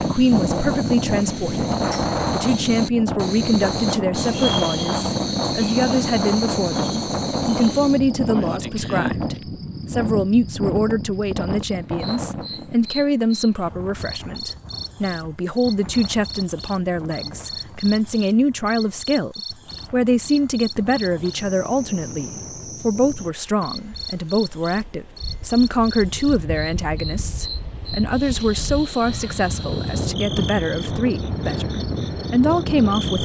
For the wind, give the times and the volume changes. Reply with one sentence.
The wind can be heard from 0.0 to 33.2 s, getting quieter then louder.